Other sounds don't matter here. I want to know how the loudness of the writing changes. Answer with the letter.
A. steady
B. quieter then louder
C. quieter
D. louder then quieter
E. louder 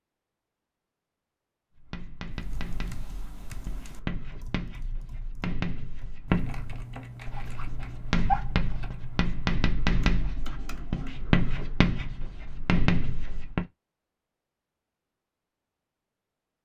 E.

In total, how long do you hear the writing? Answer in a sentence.
You can hear the writing for 12 seconds altogether.